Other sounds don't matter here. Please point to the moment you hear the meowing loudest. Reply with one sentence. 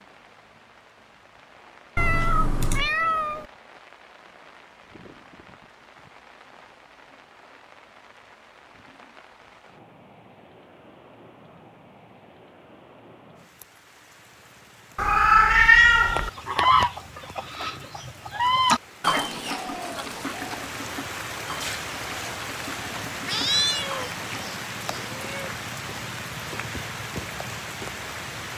The volume of the meowing peaks at 16 seconds.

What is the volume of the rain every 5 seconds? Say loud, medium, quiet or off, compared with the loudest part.
quiet, quiet, quiet, medium, loud, loud.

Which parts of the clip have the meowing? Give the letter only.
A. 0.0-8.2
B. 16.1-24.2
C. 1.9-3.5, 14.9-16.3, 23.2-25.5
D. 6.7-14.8
C.